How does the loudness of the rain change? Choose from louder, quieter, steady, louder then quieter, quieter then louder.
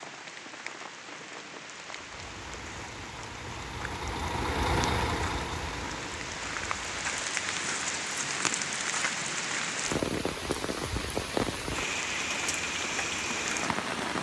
louder.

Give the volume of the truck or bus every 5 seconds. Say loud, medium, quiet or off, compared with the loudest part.
loud, loud, off.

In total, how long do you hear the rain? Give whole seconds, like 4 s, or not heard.
14 s.